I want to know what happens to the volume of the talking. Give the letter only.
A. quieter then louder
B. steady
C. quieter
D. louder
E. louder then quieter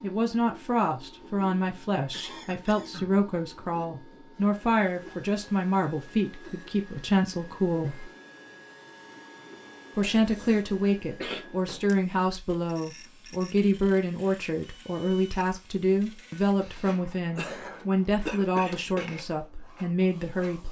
B.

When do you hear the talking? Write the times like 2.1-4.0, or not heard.
0.0-8.1, 9.9-20.6.